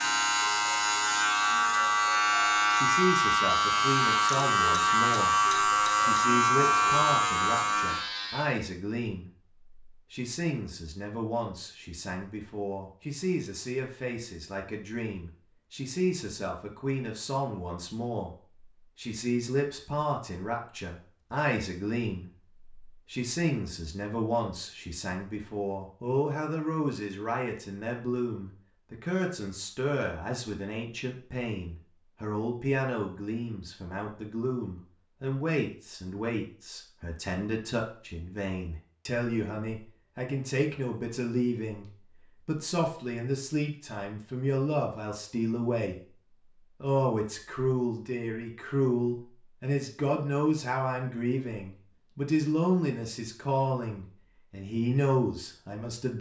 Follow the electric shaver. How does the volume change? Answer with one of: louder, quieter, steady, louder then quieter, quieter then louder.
steady.